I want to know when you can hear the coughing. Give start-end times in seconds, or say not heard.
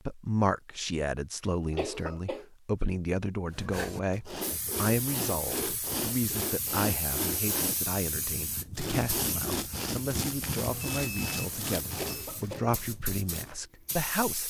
1.7-2.5, 11.9-12.8.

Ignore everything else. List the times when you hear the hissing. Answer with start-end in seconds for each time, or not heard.
4.4-14.4.